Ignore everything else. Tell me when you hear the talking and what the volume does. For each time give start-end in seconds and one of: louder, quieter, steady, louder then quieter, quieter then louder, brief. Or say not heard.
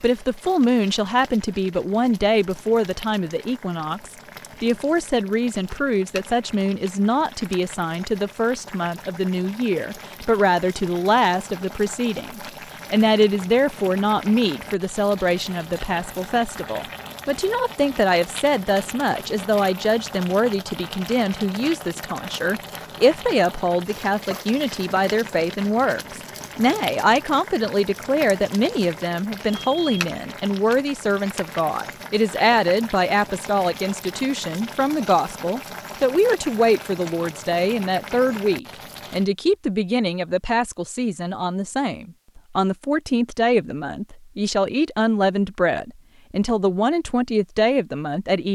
0.0-48.5 steady.